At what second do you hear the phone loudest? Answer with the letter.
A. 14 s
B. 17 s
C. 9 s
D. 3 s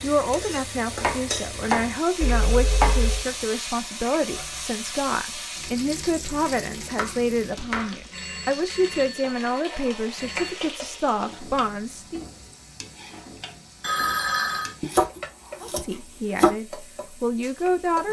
A.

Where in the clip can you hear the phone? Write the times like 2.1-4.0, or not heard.
2.2-3.2, 8.1-10.6, 13.8-14.8.